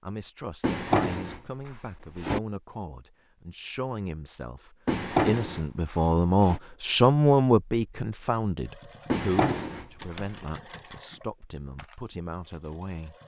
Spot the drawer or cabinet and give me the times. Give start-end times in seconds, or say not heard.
0.6-2.4, 4.8-6.6, 9.1-10.2.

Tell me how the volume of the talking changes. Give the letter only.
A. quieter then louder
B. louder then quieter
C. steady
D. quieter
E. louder
B.